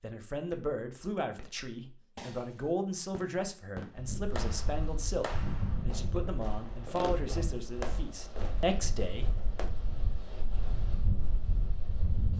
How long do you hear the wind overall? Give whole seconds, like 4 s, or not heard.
8 s.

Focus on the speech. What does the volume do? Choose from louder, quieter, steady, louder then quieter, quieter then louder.
steady.